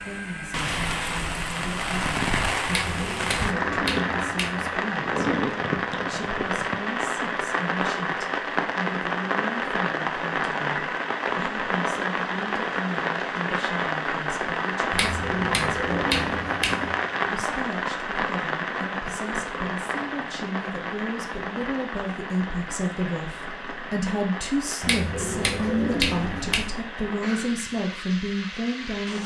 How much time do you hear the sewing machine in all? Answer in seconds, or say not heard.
not heard.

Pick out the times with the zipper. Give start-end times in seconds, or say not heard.
not heard.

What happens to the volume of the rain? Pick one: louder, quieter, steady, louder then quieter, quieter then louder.
quieter.